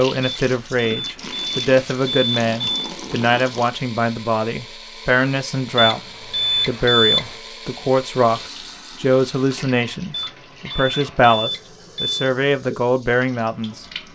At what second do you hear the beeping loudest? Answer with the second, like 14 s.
7 s.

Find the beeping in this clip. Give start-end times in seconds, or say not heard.
0.2-2.7, 5.8-7.3, 10.1-12.3.